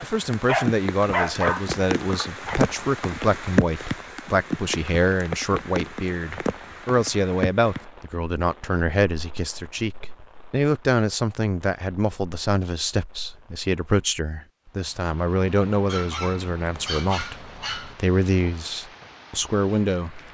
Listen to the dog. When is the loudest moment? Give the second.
1 s.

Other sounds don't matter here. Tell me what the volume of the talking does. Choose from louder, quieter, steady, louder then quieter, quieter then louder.
steady.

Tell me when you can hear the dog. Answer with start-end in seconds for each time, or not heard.
0.5-2.6, 15.8-17.9.